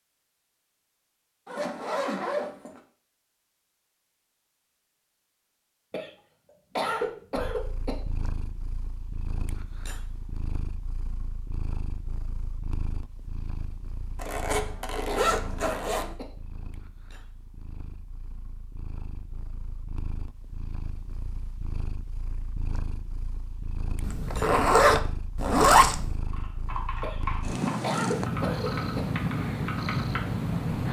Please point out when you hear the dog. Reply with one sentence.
The dog can't be heard in this clip.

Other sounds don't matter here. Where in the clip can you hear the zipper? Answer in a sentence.
You can hear the zipper from 1.4 to 2.8 s, from 14.2 to 16.1 s and from 24.0 to 26.1 s.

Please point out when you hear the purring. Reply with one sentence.
The purring can be heard from 7.3 to 30.8 s.